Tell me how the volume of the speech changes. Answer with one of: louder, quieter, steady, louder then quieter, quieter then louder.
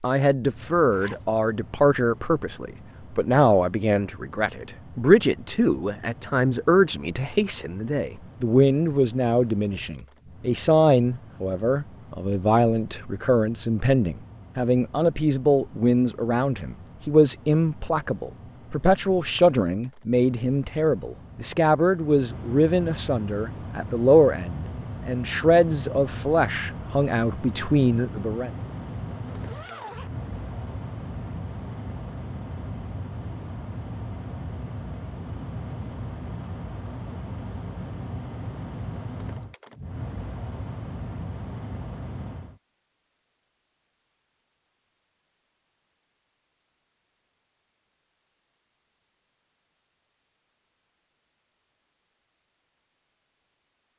steady.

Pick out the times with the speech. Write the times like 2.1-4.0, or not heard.
0.0-28.5.